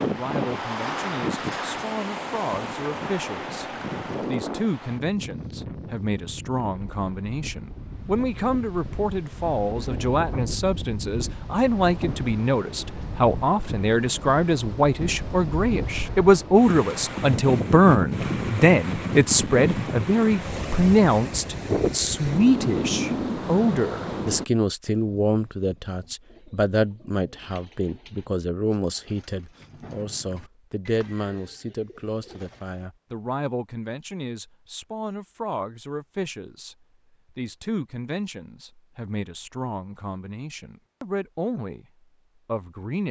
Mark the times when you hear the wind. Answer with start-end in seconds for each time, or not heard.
0.0-24.4.